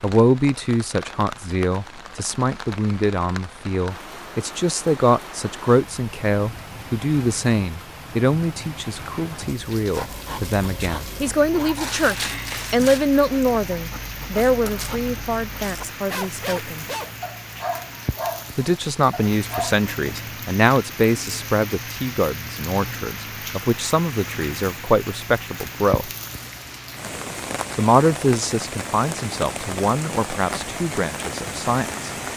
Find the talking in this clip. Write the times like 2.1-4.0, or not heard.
0.0-16.9, 18.6-26.1, 27.8-32.1.